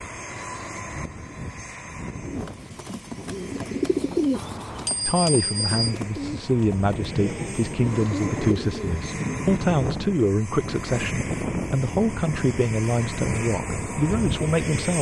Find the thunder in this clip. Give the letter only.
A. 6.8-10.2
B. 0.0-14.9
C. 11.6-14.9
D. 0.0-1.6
A.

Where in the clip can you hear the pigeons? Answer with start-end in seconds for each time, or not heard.
2.2-9.0.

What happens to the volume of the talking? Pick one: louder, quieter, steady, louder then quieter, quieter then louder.
steady.